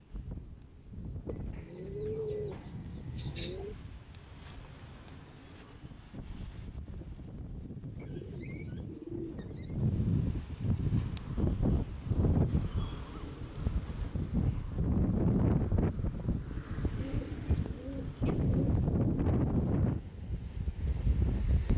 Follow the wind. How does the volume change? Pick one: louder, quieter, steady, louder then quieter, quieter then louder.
louder.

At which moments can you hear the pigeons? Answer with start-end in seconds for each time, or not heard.
1.2-3.8, 8.0-9.8, 16.9-18.8.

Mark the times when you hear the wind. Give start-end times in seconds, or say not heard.
0.0-21.7.